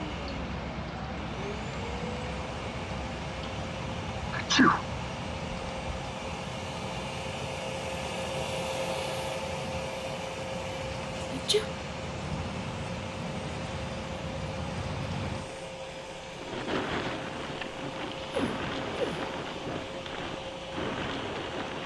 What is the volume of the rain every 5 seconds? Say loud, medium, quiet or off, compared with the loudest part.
loud, medium, loud, loud, loud.